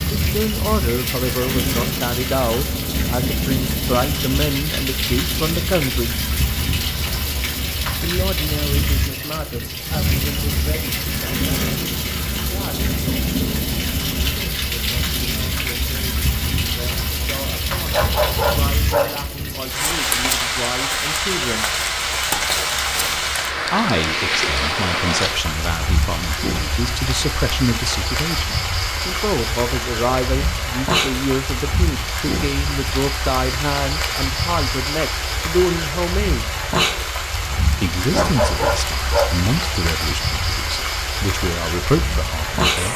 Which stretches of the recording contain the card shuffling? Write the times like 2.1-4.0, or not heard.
not heard.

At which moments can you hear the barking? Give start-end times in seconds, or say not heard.
17.9-19.3, 38.1-39.5.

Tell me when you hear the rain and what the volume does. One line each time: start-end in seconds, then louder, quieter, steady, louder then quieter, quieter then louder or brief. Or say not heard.
0.0-42.9 steady.